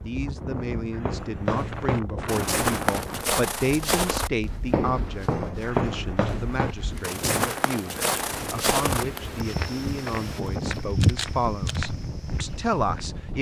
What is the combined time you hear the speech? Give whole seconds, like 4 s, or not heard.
13 s.